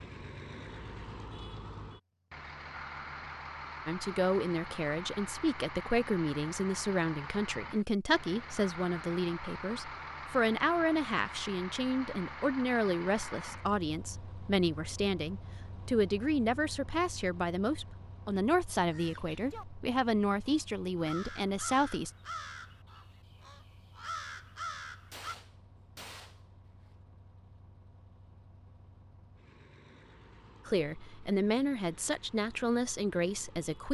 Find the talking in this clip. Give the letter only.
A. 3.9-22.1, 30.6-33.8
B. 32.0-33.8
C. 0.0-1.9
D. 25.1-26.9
A.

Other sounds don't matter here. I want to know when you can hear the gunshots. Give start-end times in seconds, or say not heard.
25.1-26.9.